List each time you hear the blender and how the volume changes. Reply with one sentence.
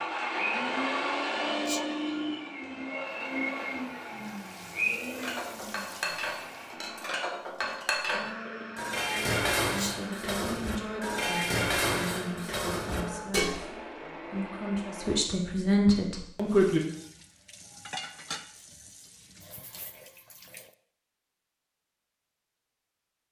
The blender can be heard from 0.0 to 15.2 s, getting quieter.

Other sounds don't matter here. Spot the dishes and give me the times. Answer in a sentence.
The dishes can be heard from 5.2 to 13.6 s.